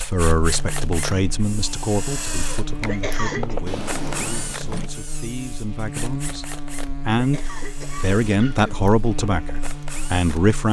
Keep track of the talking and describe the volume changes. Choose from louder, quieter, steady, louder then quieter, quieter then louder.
quieter then louder.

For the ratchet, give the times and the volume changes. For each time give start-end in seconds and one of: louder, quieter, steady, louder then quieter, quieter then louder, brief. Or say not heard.
not heard.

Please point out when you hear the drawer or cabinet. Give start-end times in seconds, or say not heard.
3.6-5.0.